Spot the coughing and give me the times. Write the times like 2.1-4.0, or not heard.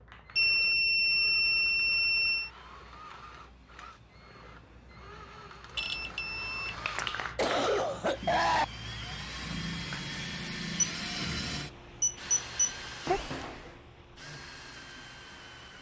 6.7-8.7.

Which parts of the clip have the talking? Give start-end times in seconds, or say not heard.
not heard.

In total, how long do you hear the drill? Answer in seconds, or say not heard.
16 s.